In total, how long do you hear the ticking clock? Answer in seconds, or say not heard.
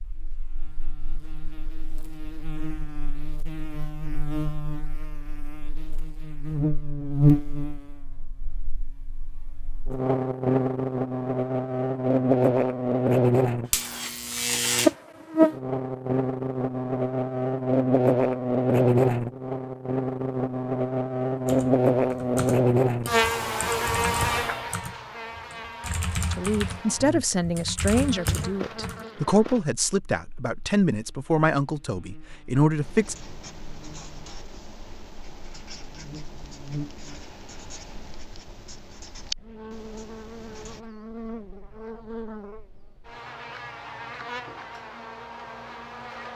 not heard.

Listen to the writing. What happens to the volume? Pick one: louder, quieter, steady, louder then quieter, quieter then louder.
louder.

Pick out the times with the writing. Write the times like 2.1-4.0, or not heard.
32.8-40.9.